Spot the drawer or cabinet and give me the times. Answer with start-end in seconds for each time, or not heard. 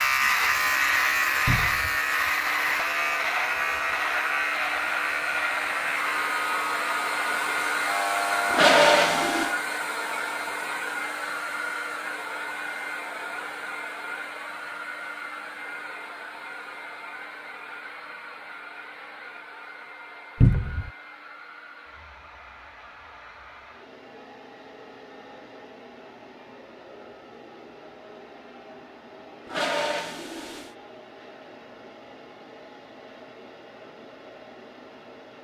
1.4-2.0, 20.4-20.9.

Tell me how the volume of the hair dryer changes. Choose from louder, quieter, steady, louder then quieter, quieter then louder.
quieter.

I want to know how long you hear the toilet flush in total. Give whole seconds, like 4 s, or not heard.
2 s.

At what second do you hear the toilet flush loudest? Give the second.
9 s.